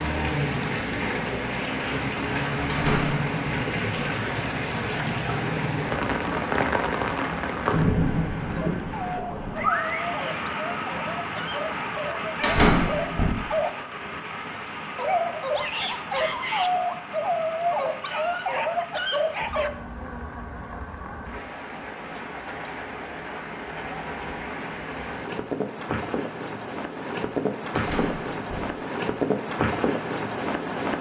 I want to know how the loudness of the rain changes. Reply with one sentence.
The loudness of the rain goes down, then up.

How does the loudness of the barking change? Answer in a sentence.
The volume of the barking goes up.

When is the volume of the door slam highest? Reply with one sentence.
The loudest moment of the door slam is at 13 seconds.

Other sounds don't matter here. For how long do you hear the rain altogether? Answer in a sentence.
You can hear the rain for 31 seconds altogether.